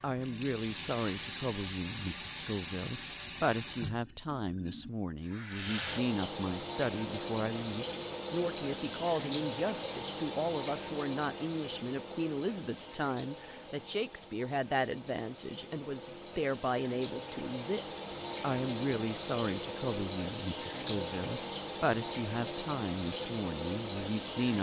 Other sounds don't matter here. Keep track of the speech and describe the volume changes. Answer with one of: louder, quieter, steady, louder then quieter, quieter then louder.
steady.